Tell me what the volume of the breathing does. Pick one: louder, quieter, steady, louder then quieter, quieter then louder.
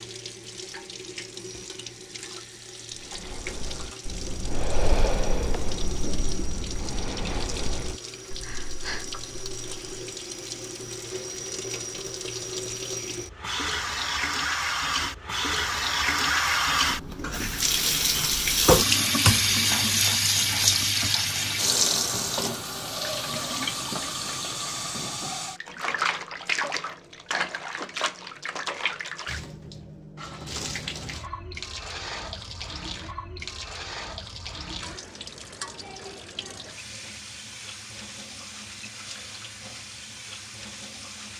louder then quieter.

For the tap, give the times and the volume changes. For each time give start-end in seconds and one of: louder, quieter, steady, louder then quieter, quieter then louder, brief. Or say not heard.
0.0-41.3 louder then quieter.